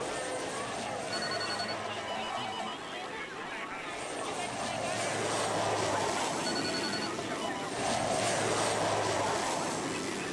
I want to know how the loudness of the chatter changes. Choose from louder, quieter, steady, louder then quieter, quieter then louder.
steady.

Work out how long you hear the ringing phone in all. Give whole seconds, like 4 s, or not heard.
3 s.